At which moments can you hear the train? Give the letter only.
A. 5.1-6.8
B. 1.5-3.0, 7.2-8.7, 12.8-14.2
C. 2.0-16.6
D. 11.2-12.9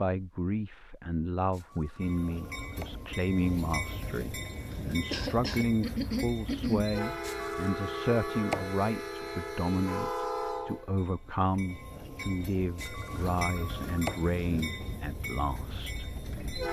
C.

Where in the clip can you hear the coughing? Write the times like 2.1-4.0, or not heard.
5.1-6.8.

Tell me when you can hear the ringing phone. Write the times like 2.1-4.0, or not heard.
1.5-3.0, 7.2-8.7, 12.8-14.2.